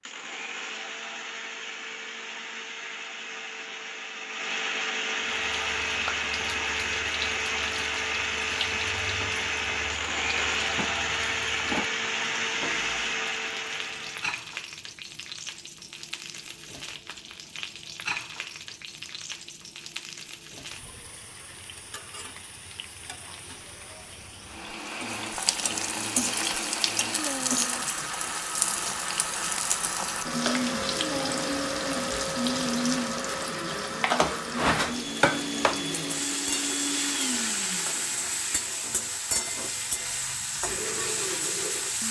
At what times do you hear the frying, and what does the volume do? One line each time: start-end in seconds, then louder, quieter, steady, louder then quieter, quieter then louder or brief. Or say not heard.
5.2-42.0 louder.